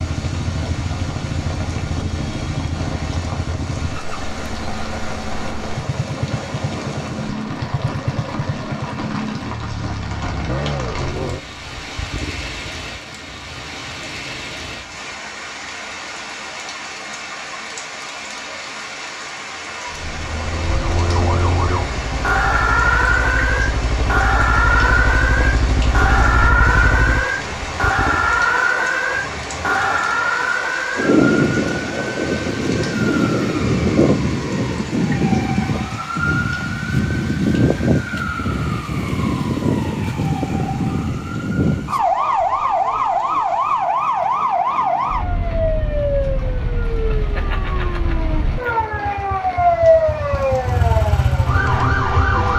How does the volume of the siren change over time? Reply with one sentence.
The volume of the siren stays about the same.